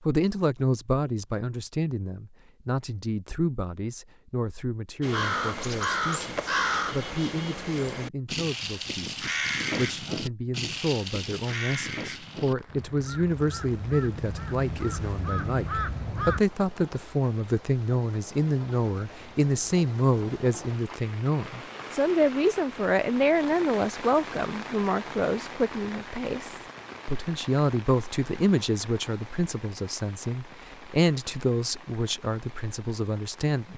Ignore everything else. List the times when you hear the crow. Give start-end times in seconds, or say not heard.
5.0-16.4.